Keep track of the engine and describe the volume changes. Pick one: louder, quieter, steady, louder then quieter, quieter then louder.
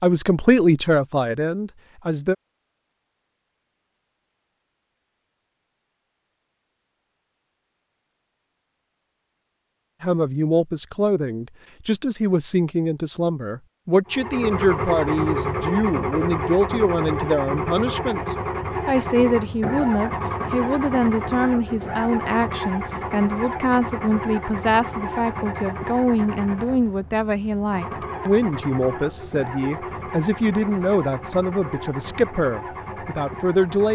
quieter.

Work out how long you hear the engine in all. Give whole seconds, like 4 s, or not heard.
20 s.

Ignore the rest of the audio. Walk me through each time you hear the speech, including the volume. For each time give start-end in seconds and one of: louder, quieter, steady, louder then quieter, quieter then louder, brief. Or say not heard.
0.0-2.4 brief
10.0-33.9 steady.